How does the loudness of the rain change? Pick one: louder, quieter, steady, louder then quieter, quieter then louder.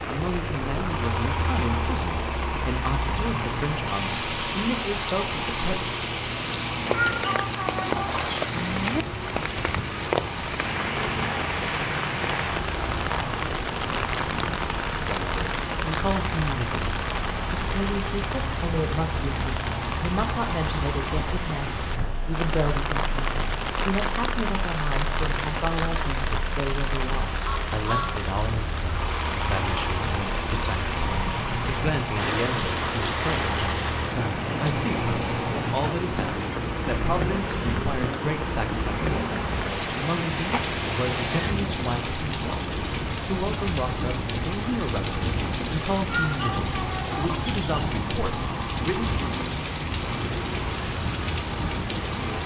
steady.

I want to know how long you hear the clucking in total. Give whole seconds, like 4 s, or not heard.
3 s.